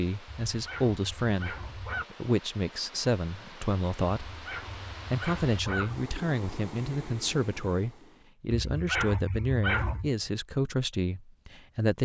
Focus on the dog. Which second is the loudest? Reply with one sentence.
The loudest moment of the dog is at 10 seconds.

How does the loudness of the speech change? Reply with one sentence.
The volume of the speech stays about the same.